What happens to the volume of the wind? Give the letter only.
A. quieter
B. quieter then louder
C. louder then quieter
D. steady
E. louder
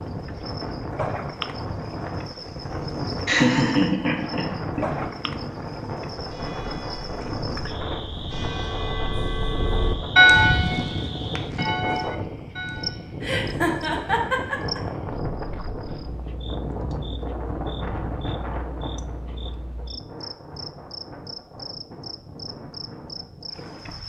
A.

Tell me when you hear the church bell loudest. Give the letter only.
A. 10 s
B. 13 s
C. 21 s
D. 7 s
A.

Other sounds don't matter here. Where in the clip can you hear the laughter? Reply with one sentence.
The laughter can be heard from 3.2 to 5.3 s and from 13.2 to 14.8 s.